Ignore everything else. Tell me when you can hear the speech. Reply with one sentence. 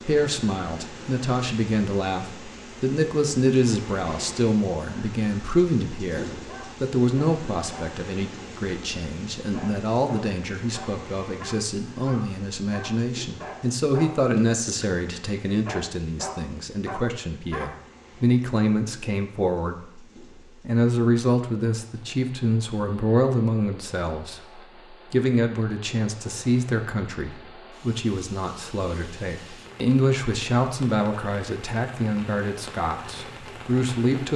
You can hear the speech from 0.0 to 34.3 s.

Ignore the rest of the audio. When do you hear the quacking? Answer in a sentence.
You can't hear the quacking here.